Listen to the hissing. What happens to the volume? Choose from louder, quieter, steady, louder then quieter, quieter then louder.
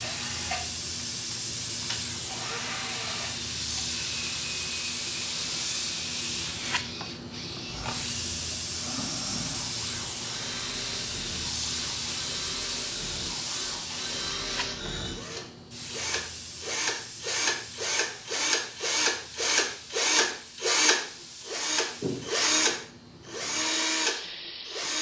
quieter.